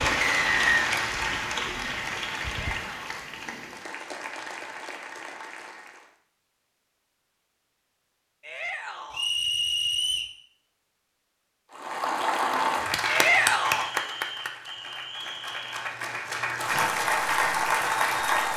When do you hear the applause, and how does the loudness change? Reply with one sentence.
The applause can be heard from 0.0 to 6.2 s, getting quieter; and from 11.7 to 18.5 s, getting quieter then louder.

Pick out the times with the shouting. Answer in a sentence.
You can hear the shouting from 2.7 to 3.2 s, from 8.4 to 9.2 s and from 13.1 to 13.9 s.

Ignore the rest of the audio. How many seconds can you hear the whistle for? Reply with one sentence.
The whistle can be heard for 4 seconds in total.